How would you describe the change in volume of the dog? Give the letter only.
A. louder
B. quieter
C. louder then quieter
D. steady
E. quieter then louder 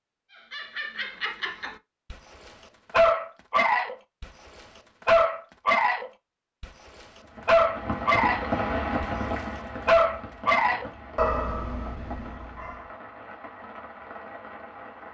C.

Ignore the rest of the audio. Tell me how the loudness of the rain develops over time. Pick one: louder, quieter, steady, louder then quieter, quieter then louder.
quieter.